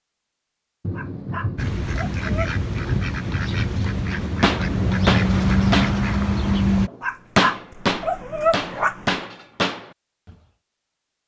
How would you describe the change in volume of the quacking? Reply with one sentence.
The loudness of the quacking goes up.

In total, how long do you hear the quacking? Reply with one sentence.
The quacking can be heard for 5 seconds in total.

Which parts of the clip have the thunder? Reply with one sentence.
You can hear the thunder from 0.8 to 5.0 s.